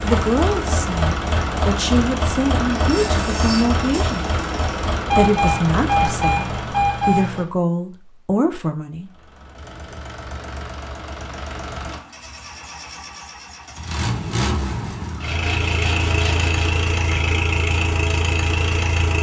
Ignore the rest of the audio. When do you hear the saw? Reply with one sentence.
The saw can be heard from 2.7 to 4.8 s and from 15.2 to 16.6 s.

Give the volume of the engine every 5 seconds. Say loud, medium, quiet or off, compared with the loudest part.
loud, medium, medium, loud.